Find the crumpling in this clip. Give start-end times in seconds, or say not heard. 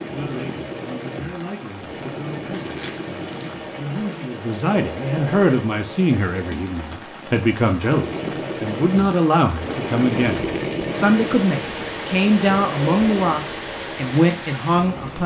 2.5-3.5.